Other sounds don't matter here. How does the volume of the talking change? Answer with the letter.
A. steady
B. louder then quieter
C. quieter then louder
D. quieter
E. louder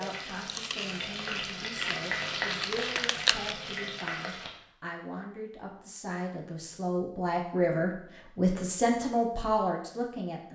E.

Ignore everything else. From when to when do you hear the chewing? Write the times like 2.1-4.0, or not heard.
0.0-3.5.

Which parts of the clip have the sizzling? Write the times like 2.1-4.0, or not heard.
0.0-4.5.